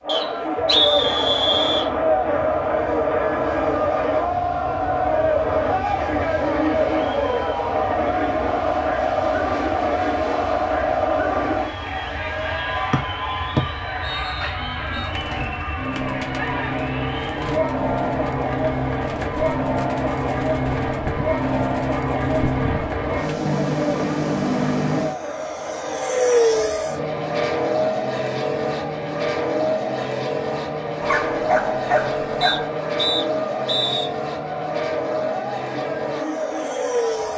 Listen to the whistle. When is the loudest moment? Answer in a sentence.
The loudest moment of the whistle is at 1 second.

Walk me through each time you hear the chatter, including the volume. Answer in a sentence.
The chatter can be heard from 0.0 to 37.3 s, getting quieter.